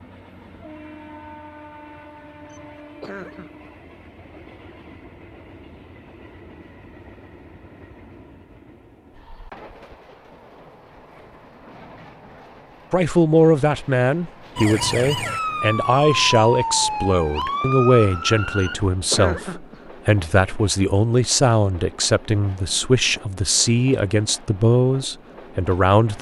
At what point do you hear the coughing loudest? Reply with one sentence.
The volume of the coughing peaks at 19 seconds.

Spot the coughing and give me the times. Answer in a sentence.
The coughing can be heard from 2.5 to 3.7 s and from 18.6 to 19.9 s.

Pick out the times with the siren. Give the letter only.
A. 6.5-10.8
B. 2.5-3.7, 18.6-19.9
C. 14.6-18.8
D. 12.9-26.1
C.